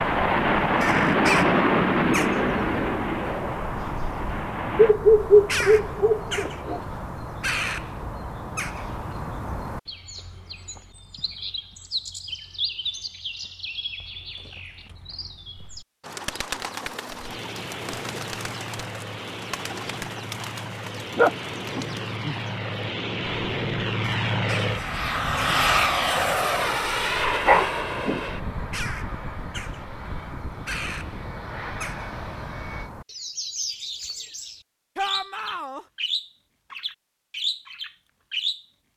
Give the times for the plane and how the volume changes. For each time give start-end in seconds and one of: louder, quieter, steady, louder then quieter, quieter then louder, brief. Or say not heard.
0.0-5.0 quieter
17.1-32.9 louder then quieter.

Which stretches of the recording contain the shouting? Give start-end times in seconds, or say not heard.
35.0-35.9.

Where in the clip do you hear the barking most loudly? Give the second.
5 s.